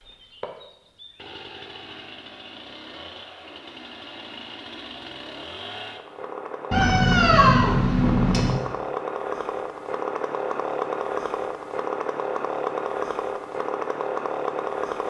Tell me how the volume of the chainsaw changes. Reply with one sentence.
The volume of the chainsaw goes up.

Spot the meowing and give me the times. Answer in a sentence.
The meowing can be heard from 6.7 to 8.6 s.